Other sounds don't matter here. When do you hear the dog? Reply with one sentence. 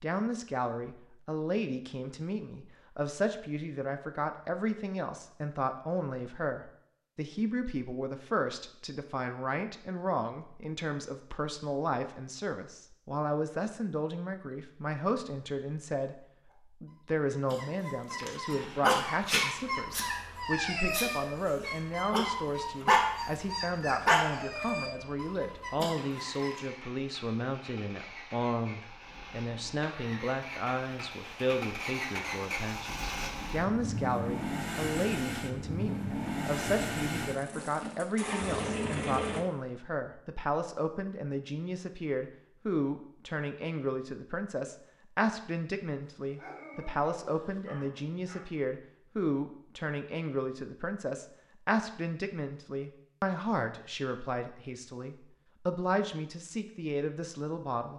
The dog can be heard from 16.4 to 26.6 s and from 46.2 to 48.5 s.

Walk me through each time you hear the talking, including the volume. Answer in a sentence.
You can hear the talking from 0.0 to 57.9 s, at a steady volume.